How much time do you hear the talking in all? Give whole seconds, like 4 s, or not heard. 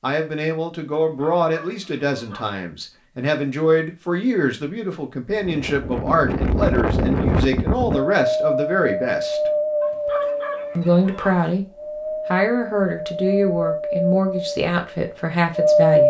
14 s.